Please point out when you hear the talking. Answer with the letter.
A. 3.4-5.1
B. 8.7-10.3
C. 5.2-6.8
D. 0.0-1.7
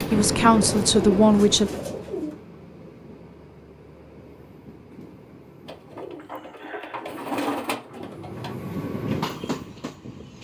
D.